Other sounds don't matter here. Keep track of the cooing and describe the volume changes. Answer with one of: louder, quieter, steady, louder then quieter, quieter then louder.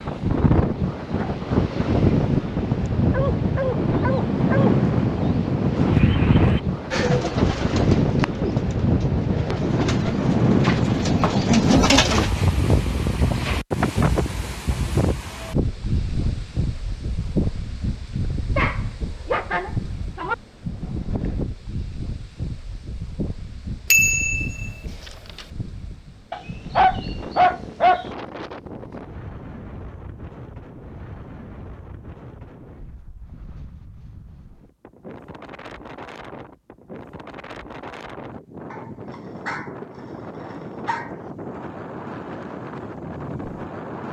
quieter then louder.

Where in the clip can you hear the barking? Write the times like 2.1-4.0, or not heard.
3.1-4.8, 18.6-20.4, 26.3-28.1, 38.7-39.8, 40.5-41.1.